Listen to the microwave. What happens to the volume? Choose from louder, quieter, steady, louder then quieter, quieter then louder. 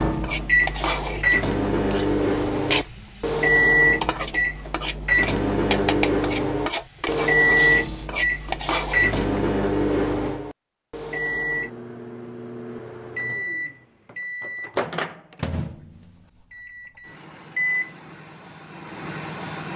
quieter.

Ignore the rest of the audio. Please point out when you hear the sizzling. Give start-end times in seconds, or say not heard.
0.0-9.4.